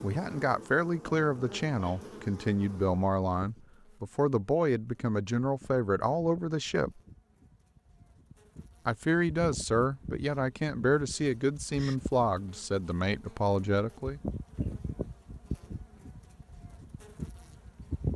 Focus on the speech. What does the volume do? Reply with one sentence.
The loudness of the speech stays about the same.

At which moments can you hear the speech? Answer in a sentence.
The speech can be heard from 0.0 to 7.0 s and from 8.8 to 14.2 s.